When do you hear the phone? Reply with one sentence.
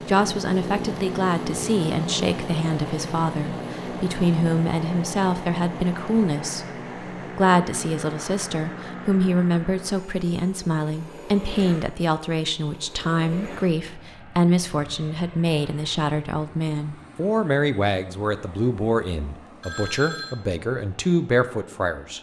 You can hear the phone from 19.6 to 20.4 s.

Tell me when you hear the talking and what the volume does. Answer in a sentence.
The talking can be heard from 0.1 to 22.1 s, at a steady volume.